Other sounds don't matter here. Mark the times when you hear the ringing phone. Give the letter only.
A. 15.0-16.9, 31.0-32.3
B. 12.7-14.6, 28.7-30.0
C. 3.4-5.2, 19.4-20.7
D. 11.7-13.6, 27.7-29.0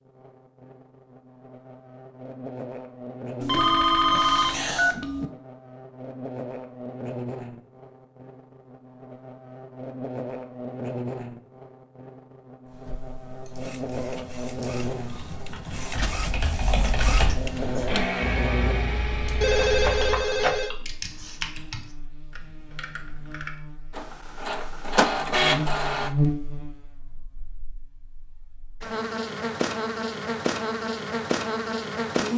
C.